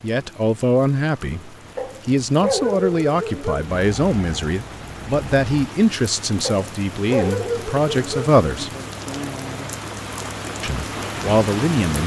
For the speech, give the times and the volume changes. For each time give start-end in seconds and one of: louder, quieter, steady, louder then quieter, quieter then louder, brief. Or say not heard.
0.0-8.7 steady
10.6-12.0 brief.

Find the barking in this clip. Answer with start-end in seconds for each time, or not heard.
1.8-3.8, 6.4-8.3.